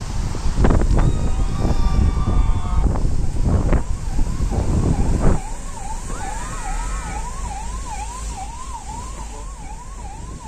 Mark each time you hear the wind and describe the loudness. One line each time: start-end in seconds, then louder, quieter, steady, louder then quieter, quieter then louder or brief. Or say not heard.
0.0-10.4 quieter.